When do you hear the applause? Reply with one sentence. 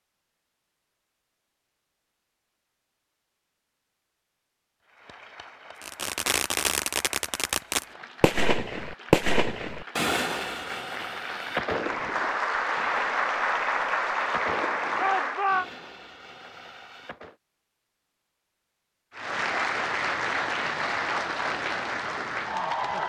You can hear the applause from 4.8 to 15.5 s and from 19.1 to 23.0 s.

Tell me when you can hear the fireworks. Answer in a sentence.
You can hear the fireworks from 5.8 to 17.4 s.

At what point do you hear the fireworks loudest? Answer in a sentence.
The volume of the fireworks peaks at 9 seconds.